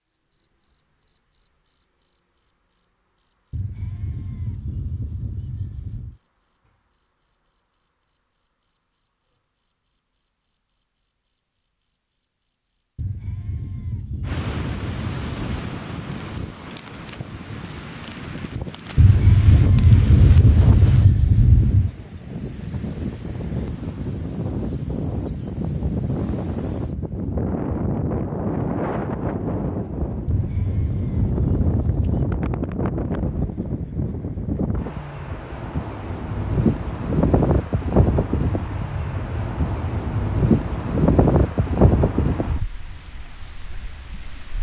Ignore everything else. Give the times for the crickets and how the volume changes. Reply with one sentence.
You can hear the crickets from 0.0 to 44.5 s, getting quieter.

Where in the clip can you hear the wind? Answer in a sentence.
You can hear the wind from 14.2 to 44.5 s.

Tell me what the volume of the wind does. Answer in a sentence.
The loudness of the wind goes up.